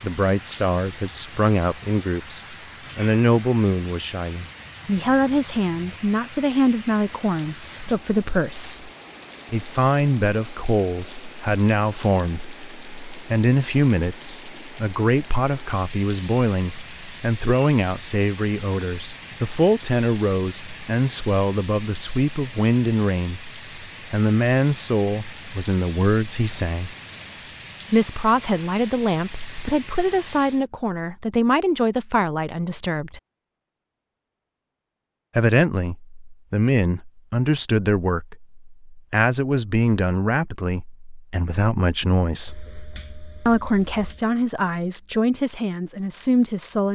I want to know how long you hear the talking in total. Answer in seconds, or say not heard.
42 s.